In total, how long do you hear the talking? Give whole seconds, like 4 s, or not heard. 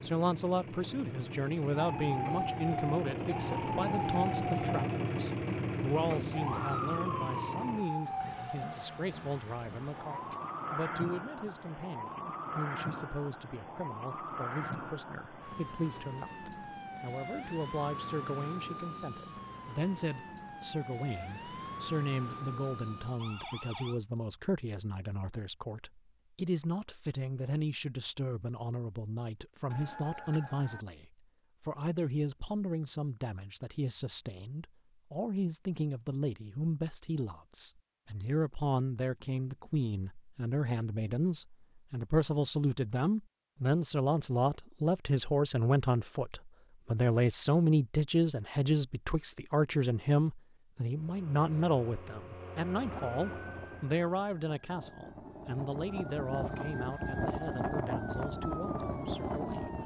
60 s.